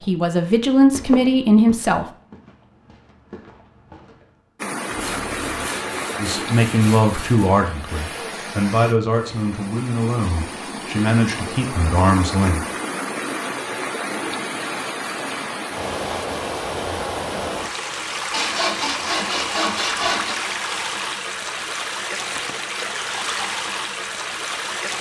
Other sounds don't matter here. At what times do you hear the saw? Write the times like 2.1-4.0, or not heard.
4.9-7.5, 18.3-20.4.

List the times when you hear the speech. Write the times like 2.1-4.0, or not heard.
0.1-2.0, 6.2-12.7.